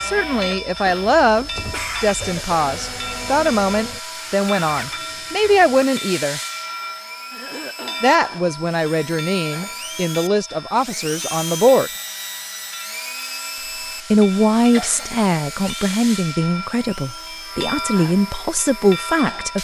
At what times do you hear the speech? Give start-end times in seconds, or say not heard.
0.0-6.4, 8.0-11.9, 14.1-19.6.